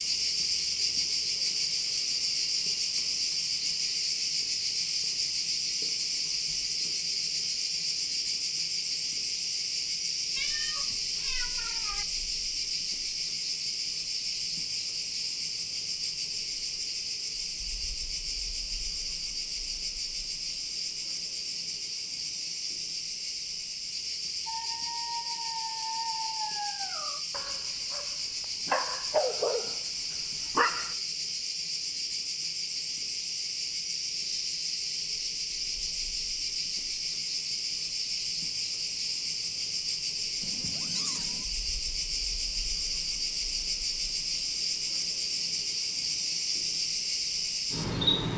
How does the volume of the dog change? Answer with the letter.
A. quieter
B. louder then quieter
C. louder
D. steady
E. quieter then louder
E.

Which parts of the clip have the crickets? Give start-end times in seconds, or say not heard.
0.0-48.3.